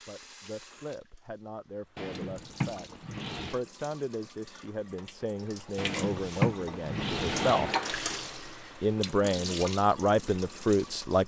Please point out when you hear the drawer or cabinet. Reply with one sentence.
You can hear the drawer or cabinet from 1.9 to 3.6 s and from 5.8 to 7.8 s.